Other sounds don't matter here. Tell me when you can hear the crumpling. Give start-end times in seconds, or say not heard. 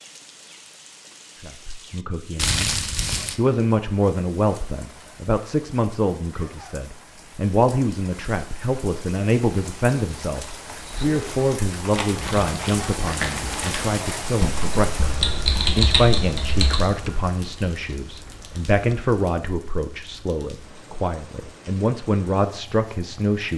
2.4-3.4, 11.9-13.9, 17.6-18.1.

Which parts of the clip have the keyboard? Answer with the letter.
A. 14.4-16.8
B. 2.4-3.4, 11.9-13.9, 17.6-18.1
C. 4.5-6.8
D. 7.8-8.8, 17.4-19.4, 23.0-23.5
A.